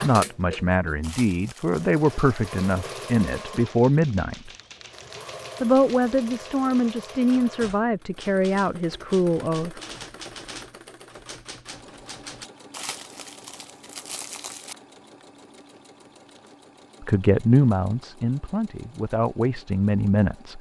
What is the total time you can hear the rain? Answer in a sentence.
You can't hear the rain here.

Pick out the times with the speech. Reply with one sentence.
You can hear the speech from 0.0 to 4.5 s, from 5.6 to 9.8 s and from 17.1 to 20.5 s.